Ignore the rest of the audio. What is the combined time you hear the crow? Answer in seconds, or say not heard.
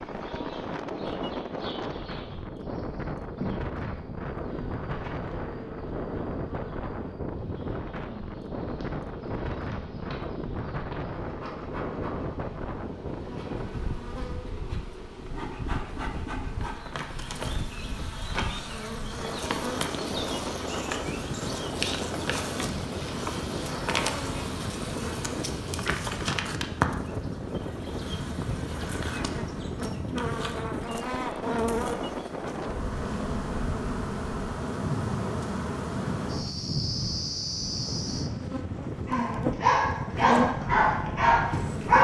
not heard.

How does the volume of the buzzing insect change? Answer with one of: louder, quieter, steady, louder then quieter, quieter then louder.
louder.